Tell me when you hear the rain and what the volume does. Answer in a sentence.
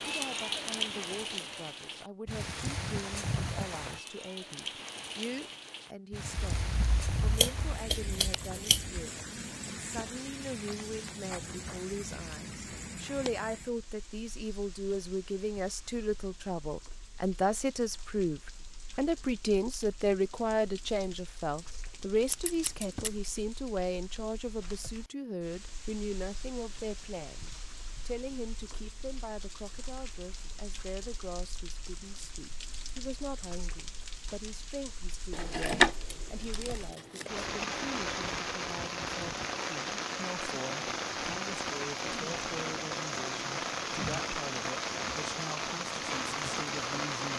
You can hear the rain from 0.0 to 47.3 s, getting quieter then louder.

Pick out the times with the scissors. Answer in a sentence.
The scissors can be heard from 6.3 to 9.1 s, from 22.2 to 23.3 s and from 35.3 to 37.5 s.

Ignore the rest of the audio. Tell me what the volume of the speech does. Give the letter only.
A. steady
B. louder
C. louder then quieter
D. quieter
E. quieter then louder
C.